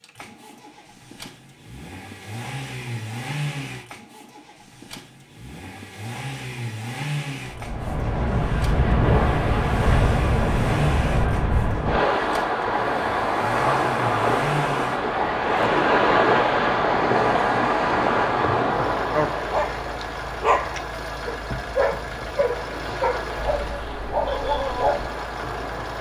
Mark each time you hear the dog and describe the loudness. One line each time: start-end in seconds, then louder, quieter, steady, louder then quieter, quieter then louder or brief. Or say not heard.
19.1-25.1 quieter then louder.